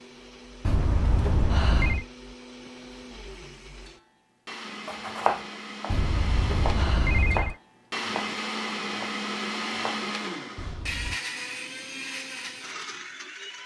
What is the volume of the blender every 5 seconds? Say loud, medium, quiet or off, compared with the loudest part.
medium, loud, loud.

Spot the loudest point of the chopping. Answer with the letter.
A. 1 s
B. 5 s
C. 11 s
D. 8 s
B.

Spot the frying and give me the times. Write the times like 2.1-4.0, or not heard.
not heard.